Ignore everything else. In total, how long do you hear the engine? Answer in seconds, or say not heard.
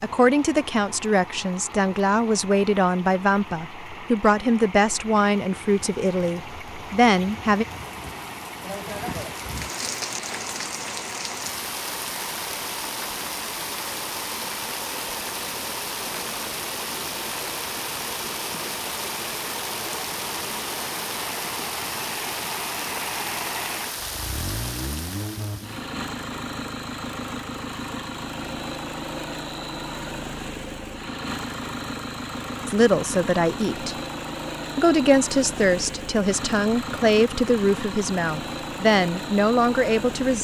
40 s.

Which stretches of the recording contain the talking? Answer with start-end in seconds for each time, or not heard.
0.0-7.7, 32.6-34.0, 34.8-40.3.